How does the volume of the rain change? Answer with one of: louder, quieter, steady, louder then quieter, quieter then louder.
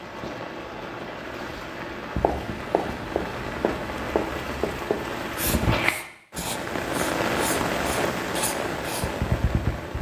louder.